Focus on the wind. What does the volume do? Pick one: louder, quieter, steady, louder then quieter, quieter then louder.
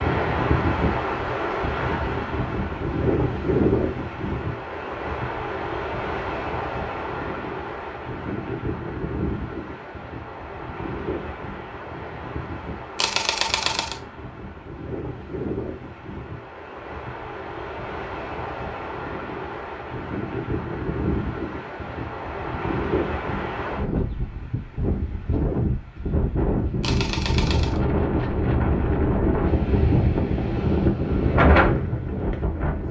quieter then louder.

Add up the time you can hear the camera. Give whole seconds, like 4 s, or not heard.
2 s.